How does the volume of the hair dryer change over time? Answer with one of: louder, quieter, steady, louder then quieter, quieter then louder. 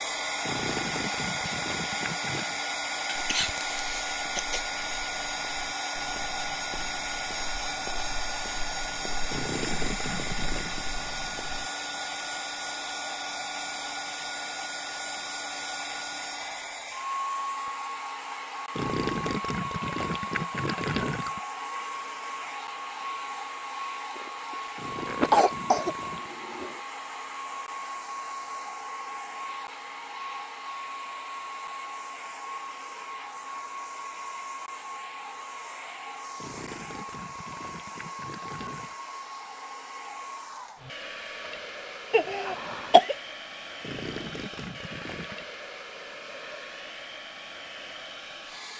quieter.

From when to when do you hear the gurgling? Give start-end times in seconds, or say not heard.
0.4-2.6, 9.3-10.8, 18.8-21.4, 24.8-26.3, 36.4-39.0, 43.8-45.5.